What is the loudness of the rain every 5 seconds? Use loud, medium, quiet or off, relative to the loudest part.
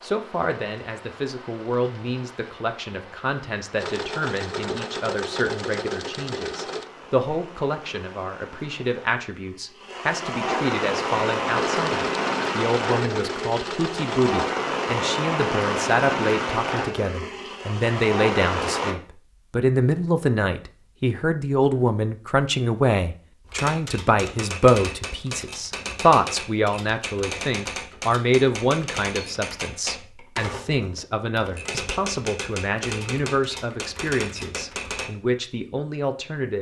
quiet, quiet, loud, loud, off, off, off, off.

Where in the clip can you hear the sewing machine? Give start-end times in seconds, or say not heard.
3.8-6.9, 11.4-14.5.